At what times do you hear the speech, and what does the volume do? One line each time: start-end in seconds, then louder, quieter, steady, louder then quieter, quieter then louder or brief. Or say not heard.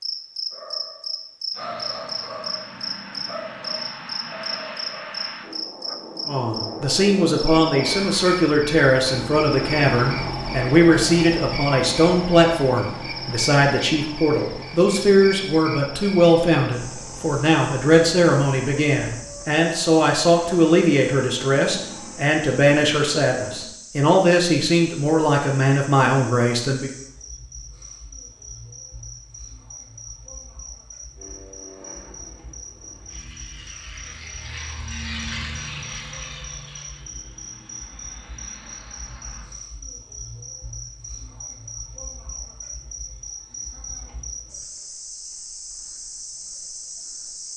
6.2-26.9 steady.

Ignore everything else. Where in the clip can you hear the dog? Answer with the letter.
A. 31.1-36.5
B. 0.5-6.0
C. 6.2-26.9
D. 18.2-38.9
B.